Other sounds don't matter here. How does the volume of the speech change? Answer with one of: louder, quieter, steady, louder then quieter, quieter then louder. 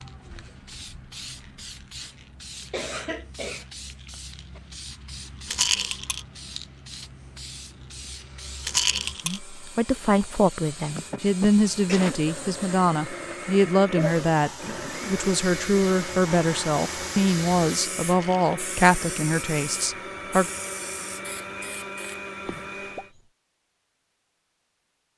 steady.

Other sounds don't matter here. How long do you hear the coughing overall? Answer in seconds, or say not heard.
4 s.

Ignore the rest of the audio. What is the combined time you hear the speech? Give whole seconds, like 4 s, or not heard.
11 s.